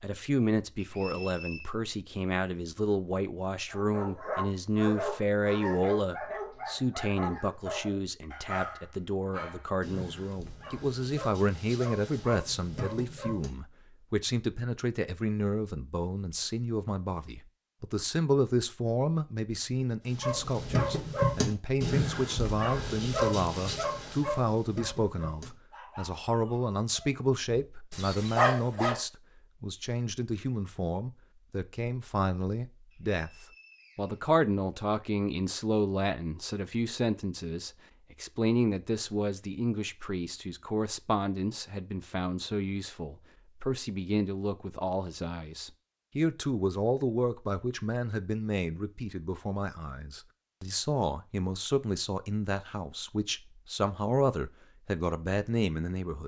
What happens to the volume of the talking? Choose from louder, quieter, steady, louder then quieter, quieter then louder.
steady.